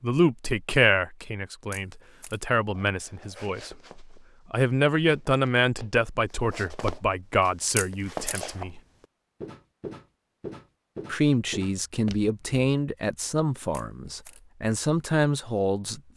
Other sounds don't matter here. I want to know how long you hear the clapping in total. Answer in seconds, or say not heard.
not heard.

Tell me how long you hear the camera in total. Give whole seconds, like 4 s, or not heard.
2 s.